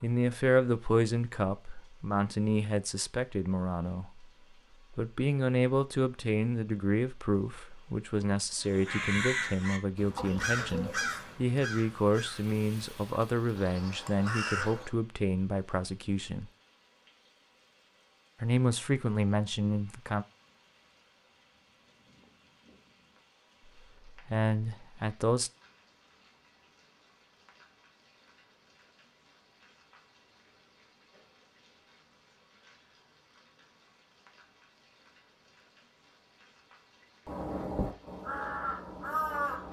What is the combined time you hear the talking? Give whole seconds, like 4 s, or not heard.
19 s.